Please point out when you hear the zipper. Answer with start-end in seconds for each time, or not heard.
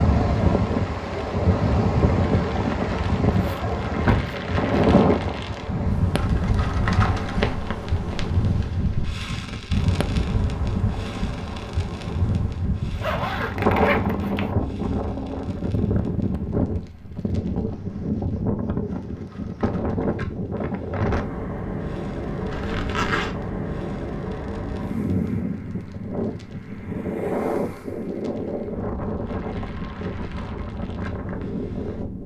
3.3-4.3, 12.9-14.6, 22.5-23.4.